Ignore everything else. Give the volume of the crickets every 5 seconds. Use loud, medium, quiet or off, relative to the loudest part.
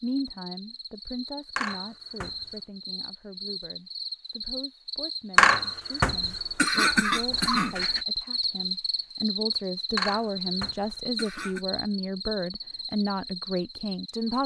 medium, loud, loud.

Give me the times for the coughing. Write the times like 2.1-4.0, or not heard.
1.6-2.5, 5.3-8.0, 9.9-11.6.